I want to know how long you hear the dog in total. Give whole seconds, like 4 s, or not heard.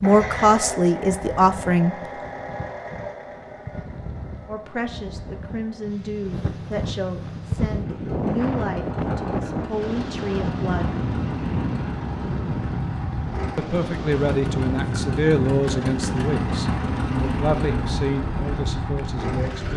not heard.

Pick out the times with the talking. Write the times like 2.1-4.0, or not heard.
0.0-1.9, 4.5-10.9, 13.6-19.7.